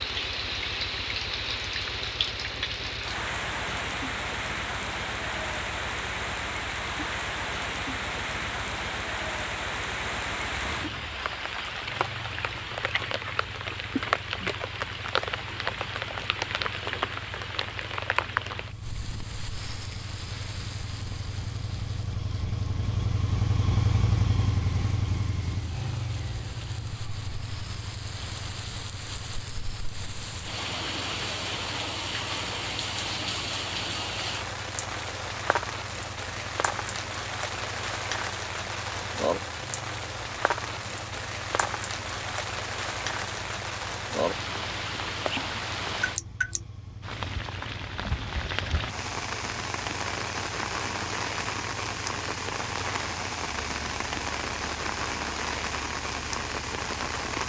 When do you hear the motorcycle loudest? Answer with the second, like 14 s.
24 s.